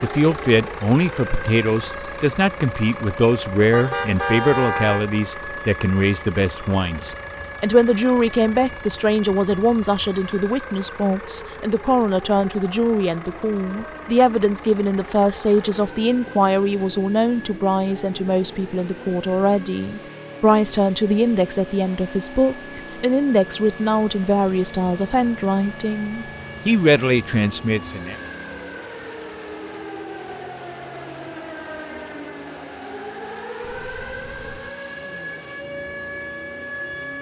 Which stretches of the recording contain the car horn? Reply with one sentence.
You can hear the car horn from 3.7 to 5.0 s and from 33.6 to 34.8 s.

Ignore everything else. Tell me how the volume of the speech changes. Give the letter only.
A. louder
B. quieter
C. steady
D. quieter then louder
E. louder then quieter
C.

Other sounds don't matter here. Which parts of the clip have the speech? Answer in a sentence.
You can hear the speech from 0.0 to 28.1 s.